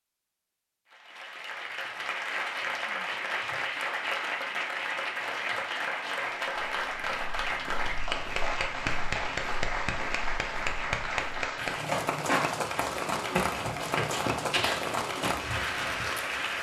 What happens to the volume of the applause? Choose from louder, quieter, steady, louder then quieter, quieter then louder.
steady.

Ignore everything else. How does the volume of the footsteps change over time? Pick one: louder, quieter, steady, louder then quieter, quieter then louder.
louder.